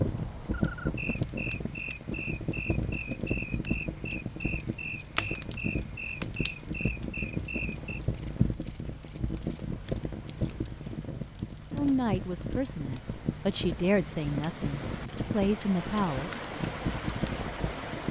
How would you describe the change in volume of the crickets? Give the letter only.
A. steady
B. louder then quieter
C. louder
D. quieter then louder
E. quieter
A.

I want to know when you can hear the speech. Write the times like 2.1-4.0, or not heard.
11.8-16.3.